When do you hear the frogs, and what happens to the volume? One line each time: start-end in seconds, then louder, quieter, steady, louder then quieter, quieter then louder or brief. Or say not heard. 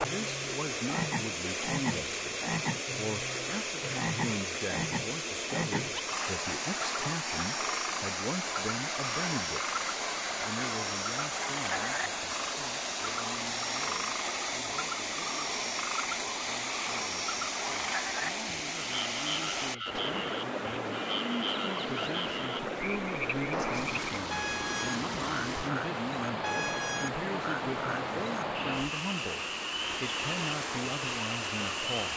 0.0-32.1 steady.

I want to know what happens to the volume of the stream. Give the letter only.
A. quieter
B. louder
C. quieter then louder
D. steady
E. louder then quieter
D.